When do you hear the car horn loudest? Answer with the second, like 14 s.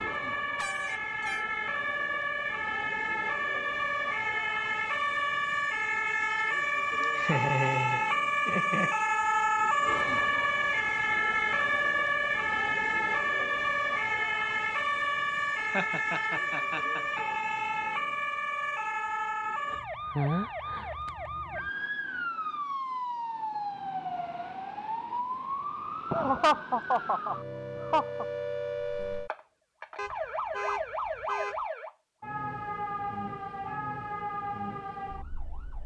31 s.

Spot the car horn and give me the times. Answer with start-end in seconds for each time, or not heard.
0.6-1.4, 29.9-31.6.